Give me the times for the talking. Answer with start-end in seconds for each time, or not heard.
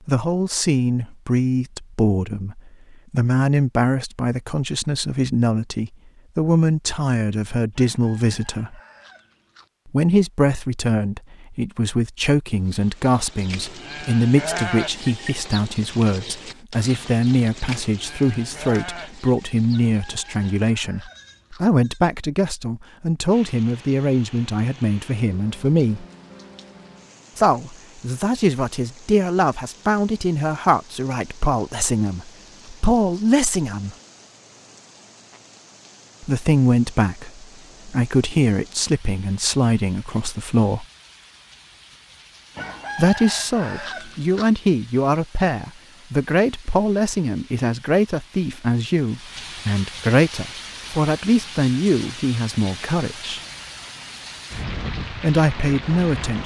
0.1-8.8, 9.8-26.1, 27.4-34.0, 36.2-40.9, 43.0-53.4, 55.2-56.4.